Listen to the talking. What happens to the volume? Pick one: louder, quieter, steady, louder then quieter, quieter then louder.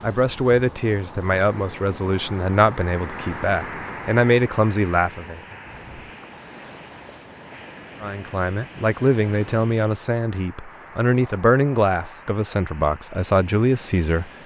steady.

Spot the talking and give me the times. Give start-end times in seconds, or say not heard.
0.0-5.4, 8.0-14.3.